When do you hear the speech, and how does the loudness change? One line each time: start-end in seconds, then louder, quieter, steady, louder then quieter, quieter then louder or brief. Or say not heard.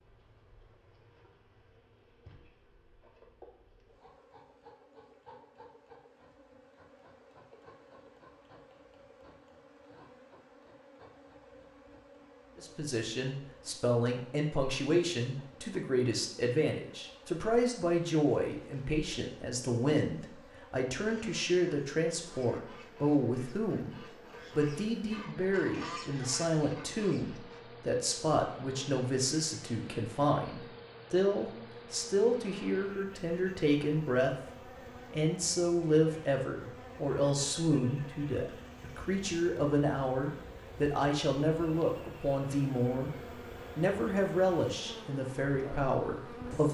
12.6-34.4 steady
35.1-43.1 steady
43.8-46.6 brief.